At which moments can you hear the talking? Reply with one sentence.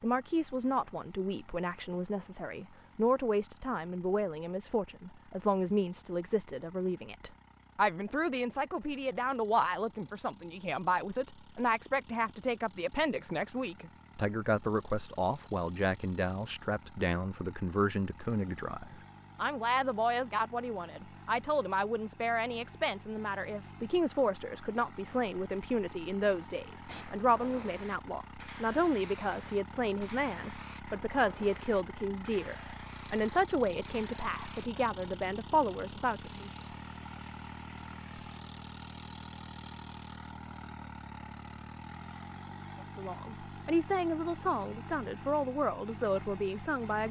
The talking can be heard from 0.0 to 36.5 s and from 43.0 to 47.0 s.